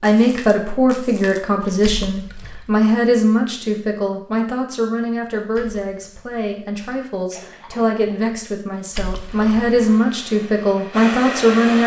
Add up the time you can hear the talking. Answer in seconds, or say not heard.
12 s.